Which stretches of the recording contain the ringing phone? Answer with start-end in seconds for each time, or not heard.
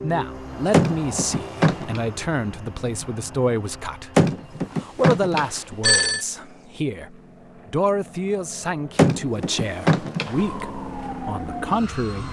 0.7-2.0, 4.2-6.2, 8.9-10.3.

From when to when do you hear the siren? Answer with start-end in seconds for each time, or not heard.
10.3-12.2.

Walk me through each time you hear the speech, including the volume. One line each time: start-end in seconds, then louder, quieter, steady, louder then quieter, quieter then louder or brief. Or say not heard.
0.0-12.2 steady.